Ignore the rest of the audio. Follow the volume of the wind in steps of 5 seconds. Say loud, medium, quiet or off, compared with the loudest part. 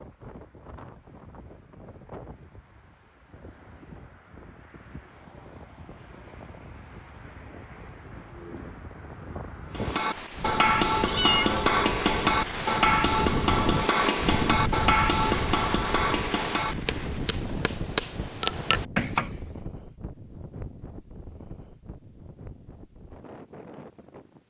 quiet, medium, loud, loud, quiet.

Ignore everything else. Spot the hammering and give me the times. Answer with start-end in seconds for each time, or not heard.
9.7-19.4.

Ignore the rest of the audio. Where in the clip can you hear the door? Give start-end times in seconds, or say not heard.
not heard.